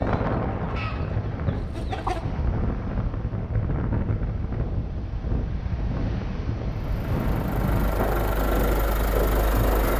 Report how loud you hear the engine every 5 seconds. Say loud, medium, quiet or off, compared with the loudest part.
off, loud.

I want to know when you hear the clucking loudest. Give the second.
2 s.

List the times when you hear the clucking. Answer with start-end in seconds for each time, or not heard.
0.0-2.2.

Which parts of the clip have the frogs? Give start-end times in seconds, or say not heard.
not heard.